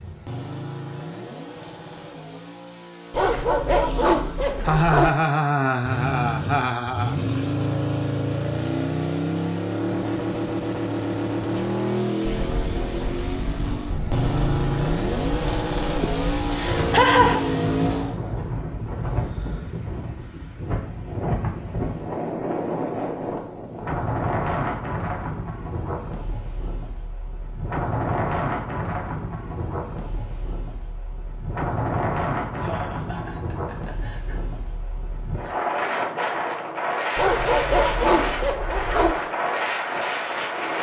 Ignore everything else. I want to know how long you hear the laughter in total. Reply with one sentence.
The laughter can be heard for 6 seconds in total.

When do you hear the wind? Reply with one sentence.
The wind can be heard from 12.3 to 40.7 s.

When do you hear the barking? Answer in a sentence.
You can hear the barking from 3.1 to 5.1 s and from 37.1 to 39.1 s.